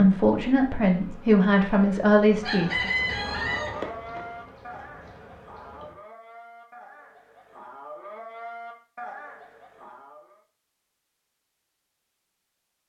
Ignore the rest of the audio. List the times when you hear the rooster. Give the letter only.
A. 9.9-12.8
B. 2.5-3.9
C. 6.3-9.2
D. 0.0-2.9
B.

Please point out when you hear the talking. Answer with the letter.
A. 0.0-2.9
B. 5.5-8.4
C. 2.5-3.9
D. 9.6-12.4
A.